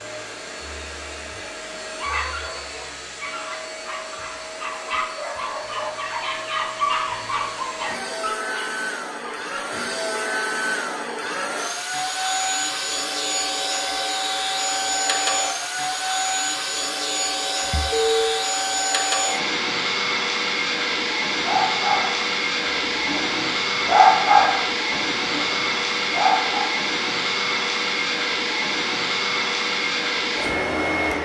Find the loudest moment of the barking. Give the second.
24 s.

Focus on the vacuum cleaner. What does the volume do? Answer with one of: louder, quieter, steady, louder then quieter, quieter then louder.
louder.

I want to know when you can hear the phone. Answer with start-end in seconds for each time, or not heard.
17.6-18.4.